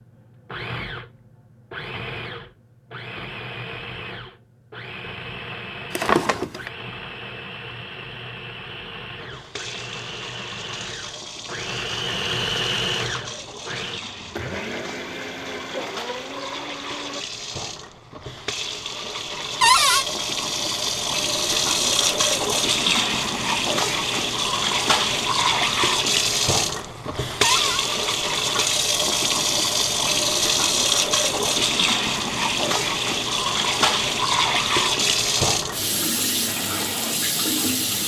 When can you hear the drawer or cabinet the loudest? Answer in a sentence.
The loudest moment of the drawer or cabinet is at 20 seconds.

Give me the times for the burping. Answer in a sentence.
The burping can't be heard in this clip.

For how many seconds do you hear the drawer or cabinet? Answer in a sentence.
You can hear the drawer or cabinet for 2 seconds altogether.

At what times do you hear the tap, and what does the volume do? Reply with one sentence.
You can hear the tap from 9.2 to 38.0 s, getting louder.